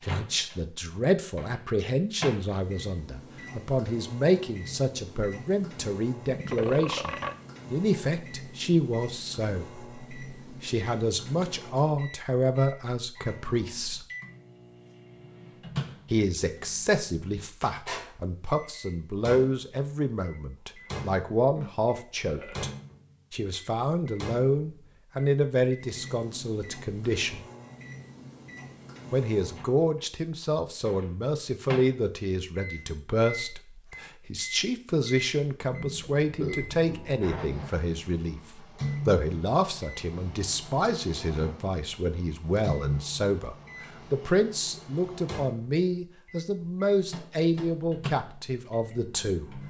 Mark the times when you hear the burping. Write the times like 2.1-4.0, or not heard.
6.2-7.3, 21.6-22.7, 36.2-37.9.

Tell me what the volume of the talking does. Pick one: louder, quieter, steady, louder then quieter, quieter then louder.
steady.